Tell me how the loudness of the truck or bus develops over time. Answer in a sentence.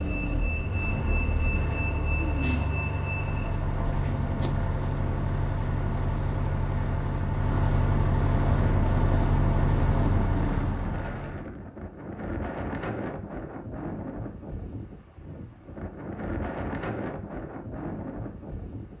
The loudness of the truck or bus stays about the same.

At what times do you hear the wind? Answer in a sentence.
The wind can be heard from 8.4 to 18.9 s.